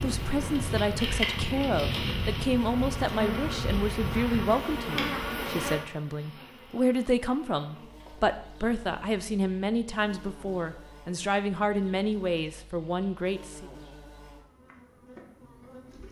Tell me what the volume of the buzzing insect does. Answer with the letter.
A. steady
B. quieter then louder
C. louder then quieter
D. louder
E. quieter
E.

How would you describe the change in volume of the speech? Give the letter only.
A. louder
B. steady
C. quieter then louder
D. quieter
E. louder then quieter
B.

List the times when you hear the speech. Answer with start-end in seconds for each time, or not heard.
0.0-13.7.